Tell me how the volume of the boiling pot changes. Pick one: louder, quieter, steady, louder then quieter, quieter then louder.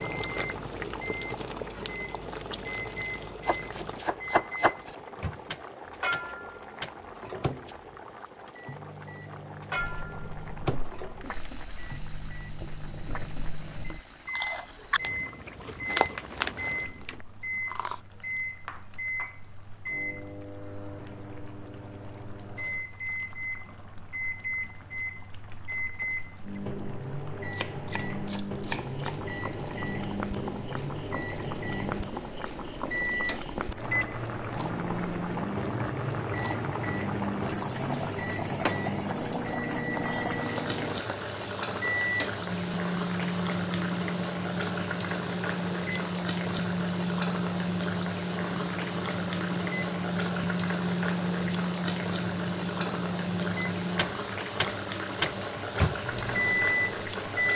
quieter then louder.